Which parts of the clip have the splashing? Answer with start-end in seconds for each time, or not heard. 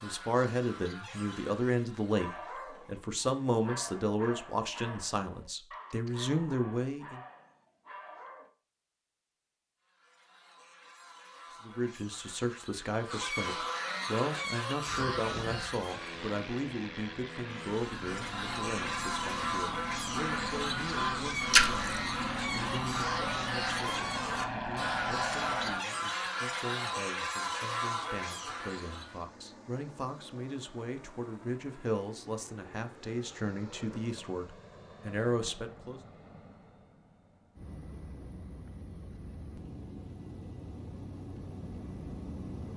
21.5-21.9.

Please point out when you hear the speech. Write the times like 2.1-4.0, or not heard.
0.0-7.2, 11.6-36.0.